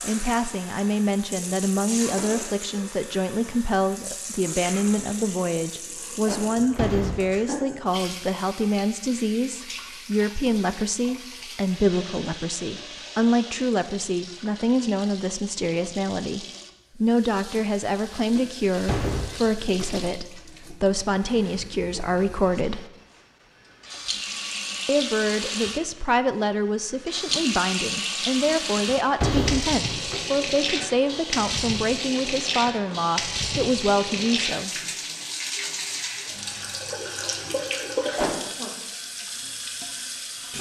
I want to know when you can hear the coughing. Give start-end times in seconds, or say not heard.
6.2-6.8, 38.1-38.7.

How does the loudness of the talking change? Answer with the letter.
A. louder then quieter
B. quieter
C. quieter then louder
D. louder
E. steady
E.